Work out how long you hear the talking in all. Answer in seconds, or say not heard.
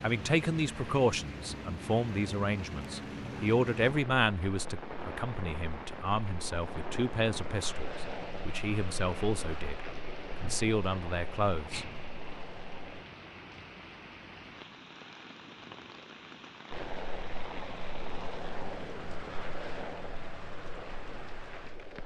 11 s.